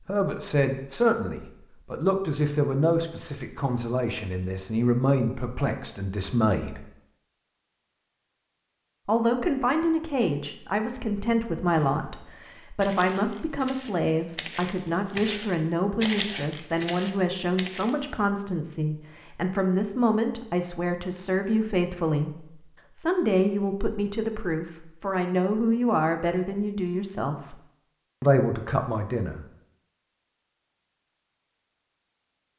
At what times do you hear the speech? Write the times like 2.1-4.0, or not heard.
0.1-6.8, 9.1-27.6, 28.2-29.4.